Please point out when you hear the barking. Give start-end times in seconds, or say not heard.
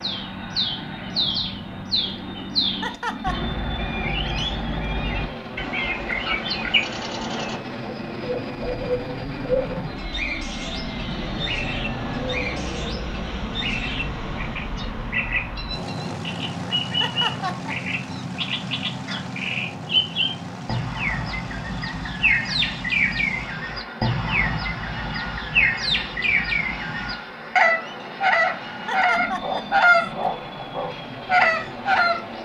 not heard.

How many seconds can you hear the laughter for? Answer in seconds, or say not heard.
3 s.